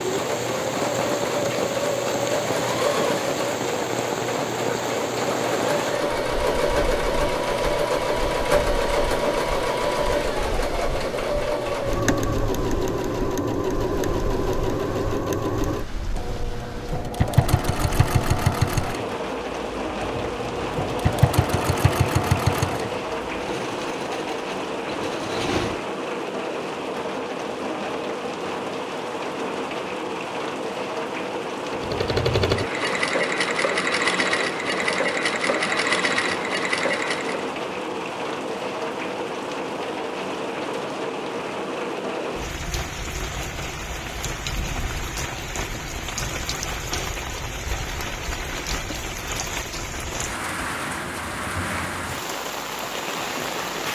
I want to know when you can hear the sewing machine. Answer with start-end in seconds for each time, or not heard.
0.0-25.8, 31.7-37.5.